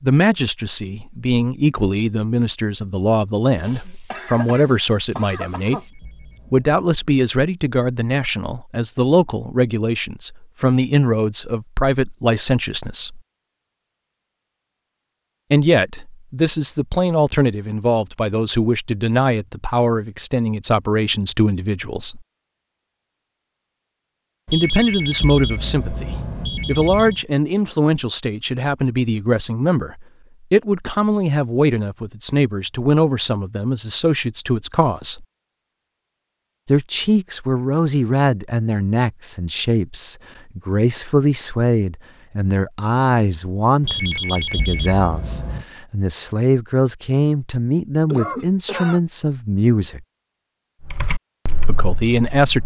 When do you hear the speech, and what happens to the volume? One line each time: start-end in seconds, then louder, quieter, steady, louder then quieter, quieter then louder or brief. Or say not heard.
0.0-13.2 steady
15.5-22.2 steady
24.5-35.2 steady
36.6-50.0 steady
51.6-52.6 brief.